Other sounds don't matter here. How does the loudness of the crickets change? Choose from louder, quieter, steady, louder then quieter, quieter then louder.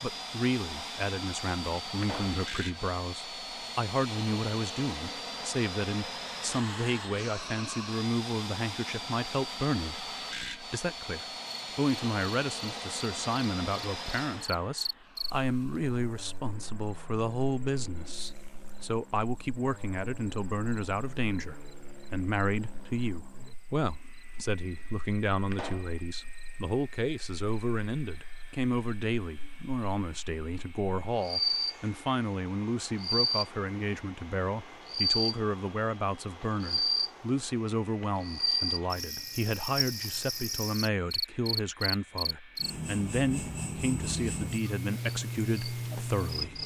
quieter then louder.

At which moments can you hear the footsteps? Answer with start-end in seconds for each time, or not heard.
not heard.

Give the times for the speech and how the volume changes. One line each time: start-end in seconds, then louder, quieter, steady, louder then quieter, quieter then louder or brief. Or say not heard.
0.0-46.6 steady.